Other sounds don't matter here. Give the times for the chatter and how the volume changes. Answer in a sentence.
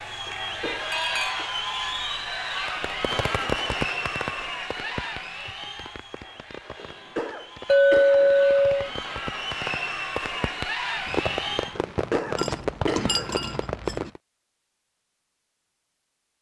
The chatter can be heard from 0.0 to 11.8 s, getting quieter then louder.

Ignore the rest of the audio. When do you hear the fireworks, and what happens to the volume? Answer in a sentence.
The fireworks can be heard from 2.6 to 14.2 s, getting quieter then louder.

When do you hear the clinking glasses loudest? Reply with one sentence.
The loudest moment of the clinking glasses is at 8 seconds.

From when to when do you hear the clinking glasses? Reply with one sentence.
You can hear the clinking glasses from 0.9 to 1.4 s, from 7.7 to 8.9 s and from 12.3 to 14.1 s.